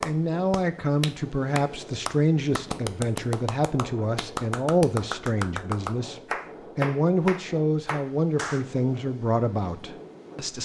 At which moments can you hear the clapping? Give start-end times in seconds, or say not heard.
0.0-8.7.